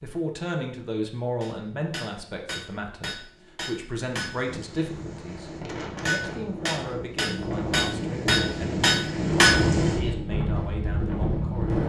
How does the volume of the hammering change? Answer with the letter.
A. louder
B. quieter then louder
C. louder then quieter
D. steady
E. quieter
A.